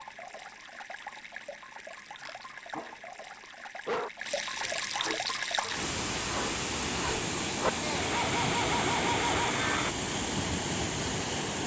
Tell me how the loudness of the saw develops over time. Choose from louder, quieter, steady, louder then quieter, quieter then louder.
louder.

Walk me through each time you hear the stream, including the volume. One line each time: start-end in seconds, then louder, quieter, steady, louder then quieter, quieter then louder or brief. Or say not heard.
0.0-11.6 louder.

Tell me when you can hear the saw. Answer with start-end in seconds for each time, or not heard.
4.5-9.9.